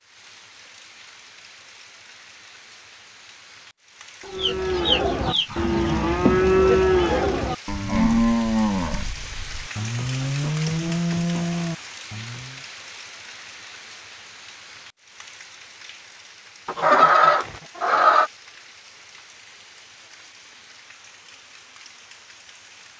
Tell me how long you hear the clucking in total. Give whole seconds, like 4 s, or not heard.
3 s.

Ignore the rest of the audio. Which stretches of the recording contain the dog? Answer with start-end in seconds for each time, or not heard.
not heard.